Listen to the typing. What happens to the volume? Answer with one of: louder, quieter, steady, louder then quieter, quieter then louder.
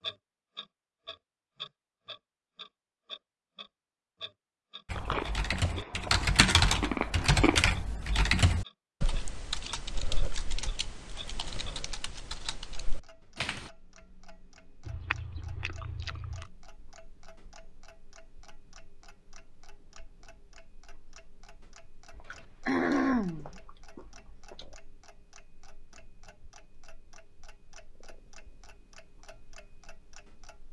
quieter.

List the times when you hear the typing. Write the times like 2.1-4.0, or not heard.
4.8-13.7.